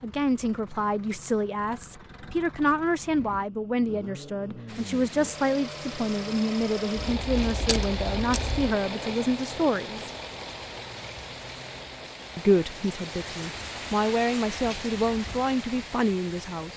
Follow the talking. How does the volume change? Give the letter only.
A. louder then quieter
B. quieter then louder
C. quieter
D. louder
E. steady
E.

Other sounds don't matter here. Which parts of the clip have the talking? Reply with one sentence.
The talking can be heard from 0.0 to 10.1 s and from 12.3 to 16.7 s.